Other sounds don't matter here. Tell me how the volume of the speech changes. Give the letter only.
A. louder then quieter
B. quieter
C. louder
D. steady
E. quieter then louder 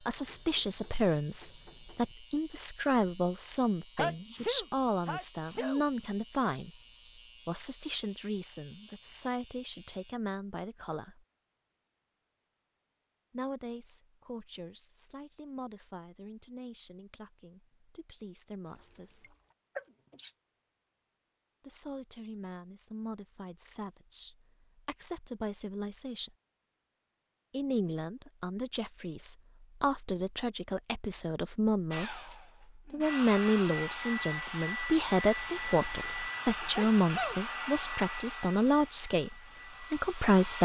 E.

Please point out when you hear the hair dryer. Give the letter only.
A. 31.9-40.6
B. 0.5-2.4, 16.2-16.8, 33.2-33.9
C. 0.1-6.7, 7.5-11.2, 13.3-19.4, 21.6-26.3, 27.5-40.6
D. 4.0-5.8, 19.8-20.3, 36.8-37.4
A.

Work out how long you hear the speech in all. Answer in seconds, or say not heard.
34 s.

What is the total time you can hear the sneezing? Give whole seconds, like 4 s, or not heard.
3 s.